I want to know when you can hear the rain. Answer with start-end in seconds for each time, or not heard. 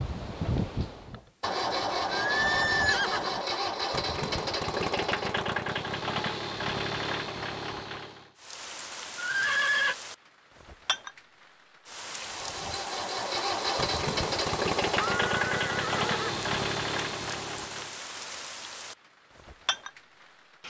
8.3-20.6.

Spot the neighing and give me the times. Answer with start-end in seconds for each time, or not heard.
2.1-3.4, 9.2-9.9, 14.9-16.4.